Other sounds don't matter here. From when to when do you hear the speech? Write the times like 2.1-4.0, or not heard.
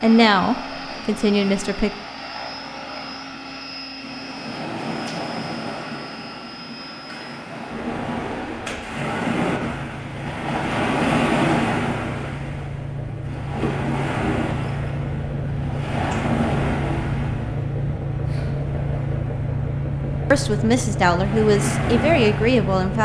0.0-1.9, 20.3-22.9.